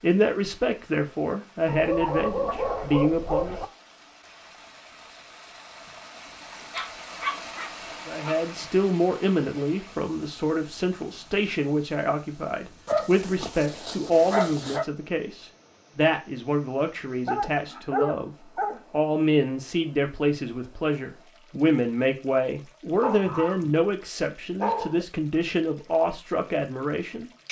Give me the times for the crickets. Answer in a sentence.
You can't hear the crickets here.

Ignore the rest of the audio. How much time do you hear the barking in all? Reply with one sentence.
The barking can be heard for 10 seconds in total.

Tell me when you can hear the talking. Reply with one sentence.
You can hear the talking from 0.0 to 3.5 s and from 8.1 to 27.4 s.